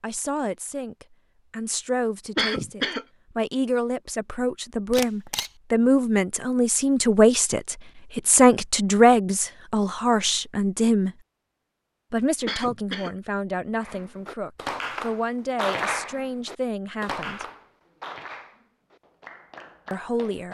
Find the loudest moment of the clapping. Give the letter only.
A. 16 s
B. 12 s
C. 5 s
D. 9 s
A.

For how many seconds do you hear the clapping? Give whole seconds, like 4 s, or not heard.
7 s.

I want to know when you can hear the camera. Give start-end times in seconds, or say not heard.
4.9-5.5.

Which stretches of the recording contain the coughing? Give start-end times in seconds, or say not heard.
2.4-3.0, 12.4-13.2.